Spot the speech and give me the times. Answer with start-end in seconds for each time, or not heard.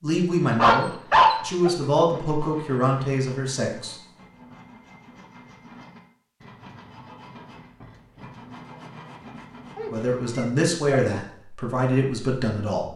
0.0-4.0, 9.9-12.9.